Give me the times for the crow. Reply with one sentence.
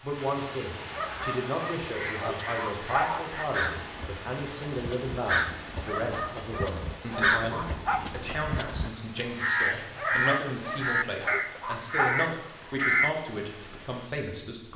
The crow can be heard from 1.1 to 13.2 s.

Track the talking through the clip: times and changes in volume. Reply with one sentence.
You can hear the talking from 0.0 to 14.7 s, at a steady volume.